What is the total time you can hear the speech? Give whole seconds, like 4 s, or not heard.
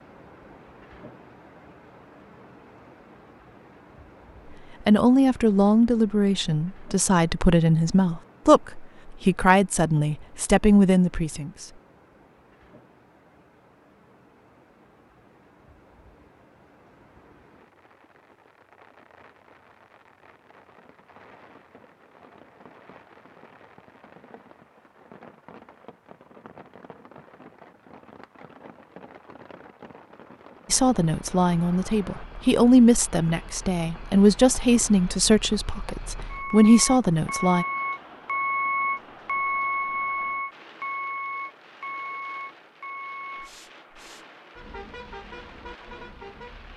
14 s.